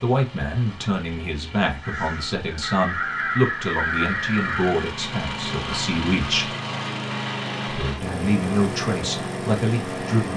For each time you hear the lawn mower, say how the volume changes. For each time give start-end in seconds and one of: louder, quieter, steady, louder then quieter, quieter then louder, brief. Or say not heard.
0.0-10.3 louder.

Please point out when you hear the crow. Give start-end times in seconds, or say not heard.
1.6-5.0.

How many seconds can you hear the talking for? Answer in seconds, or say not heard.
9 s.